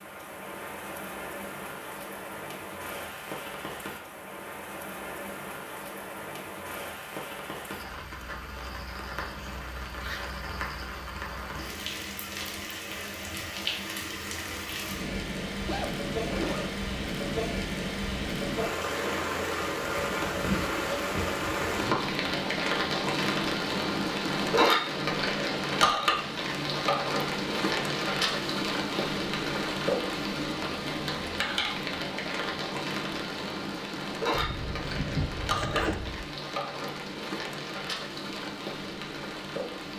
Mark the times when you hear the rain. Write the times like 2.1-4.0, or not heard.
0.0-39.9.